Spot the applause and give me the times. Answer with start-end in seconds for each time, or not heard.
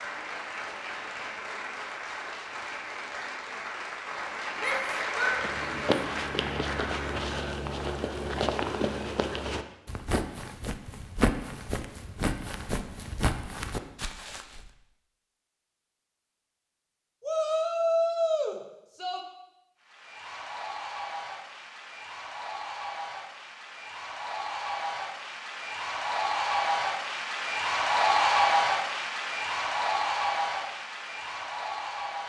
0.0-7.2, 19.8-32.2.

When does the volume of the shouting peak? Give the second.
18 s.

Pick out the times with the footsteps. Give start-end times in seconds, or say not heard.
5.3-14.7.